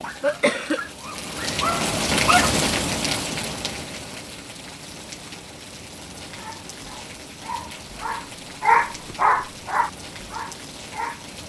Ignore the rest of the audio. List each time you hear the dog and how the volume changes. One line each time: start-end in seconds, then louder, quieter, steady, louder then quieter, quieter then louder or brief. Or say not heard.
0.0-2.5 brief
6.3-11.4 louder then quieter.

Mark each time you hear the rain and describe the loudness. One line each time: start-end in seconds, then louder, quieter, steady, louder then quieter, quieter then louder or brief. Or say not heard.
0.0-11.4 quieter.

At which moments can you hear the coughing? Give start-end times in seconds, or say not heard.
0.2-0.8.